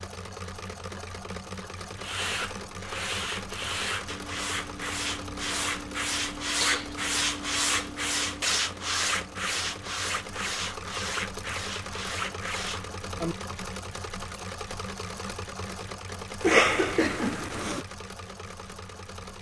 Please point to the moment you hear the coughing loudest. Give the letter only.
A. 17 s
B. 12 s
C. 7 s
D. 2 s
A.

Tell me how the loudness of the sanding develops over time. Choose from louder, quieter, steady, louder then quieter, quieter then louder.
louder then quieter.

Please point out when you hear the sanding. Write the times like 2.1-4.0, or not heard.
1.9-13.3.